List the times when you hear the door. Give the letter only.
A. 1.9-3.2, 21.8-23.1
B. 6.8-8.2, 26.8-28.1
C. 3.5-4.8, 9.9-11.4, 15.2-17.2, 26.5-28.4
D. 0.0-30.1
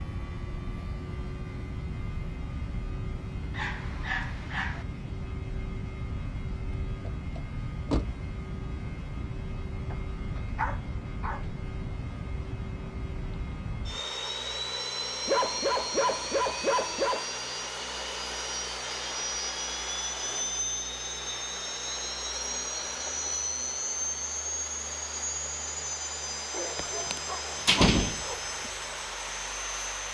B.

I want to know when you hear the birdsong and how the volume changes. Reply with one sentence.
The birdsong can't be heard in this clip.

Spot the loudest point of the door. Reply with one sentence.
The volume of the door peaks at 28 seconds.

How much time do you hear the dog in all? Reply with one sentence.
You can hear the dog for 7 seconds altogether.